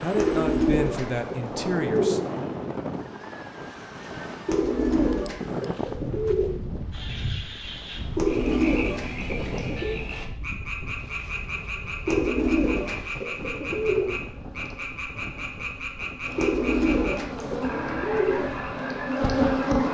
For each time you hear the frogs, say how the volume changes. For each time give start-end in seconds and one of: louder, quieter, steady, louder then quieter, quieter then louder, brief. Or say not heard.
6.9-19.9 steady.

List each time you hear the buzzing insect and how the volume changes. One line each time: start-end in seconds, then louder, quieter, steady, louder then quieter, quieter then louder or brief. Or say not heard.
10.9-19.9 louder.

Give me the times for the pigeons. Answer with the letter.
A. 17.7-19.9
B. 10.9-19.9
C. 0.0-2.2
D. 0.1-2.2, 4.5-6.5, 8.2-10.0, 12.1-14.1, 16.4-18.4
D.